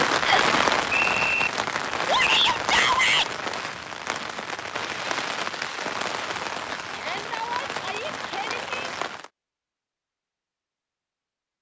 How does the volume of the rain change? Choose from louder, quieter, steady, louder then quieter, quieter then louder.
quieter.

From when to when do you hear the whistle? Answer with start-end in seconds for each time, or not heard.
0.2-1.5.